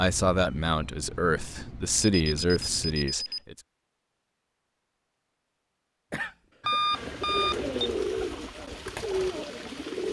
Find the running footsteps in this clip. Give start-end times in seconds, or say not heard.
not heard.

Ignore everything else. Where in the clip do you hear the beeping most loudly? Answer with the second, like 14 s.
7 s.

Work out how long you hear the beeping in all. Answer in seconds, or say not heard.
3 s.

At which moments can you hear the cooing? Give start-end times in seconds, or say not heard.
6.9-10.0.